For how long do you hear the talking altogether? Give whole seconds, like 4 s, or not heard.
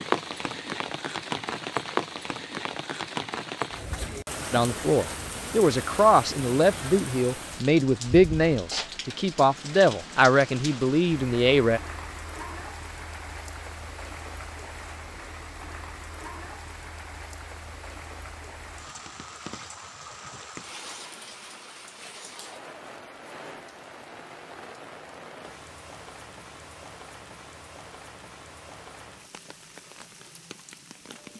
7 s.